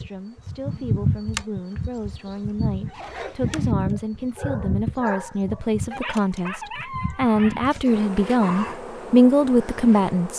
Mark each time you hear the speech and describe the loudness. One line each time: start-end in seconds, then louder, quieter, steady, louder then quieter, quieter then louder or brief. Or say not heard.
0.0-10.3 louder.